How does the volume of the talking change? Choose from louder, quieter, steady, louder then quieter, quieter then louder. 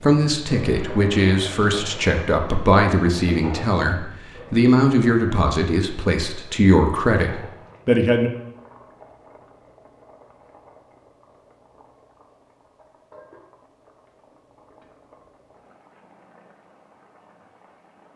steady.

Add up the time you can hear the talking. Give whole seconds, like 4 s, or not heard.
8 s.